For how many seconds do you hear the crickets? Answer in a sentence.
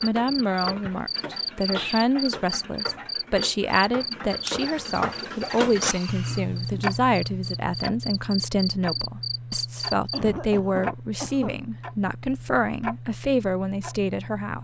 The crickets can be heard for 10 seconds in total.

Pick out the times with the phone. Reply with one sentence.
The phone can't be heard in this clip.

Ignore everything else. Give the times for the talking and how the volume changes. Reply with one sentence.
The talking can be heard from 0.0 to 14.5 s, at a steady volume.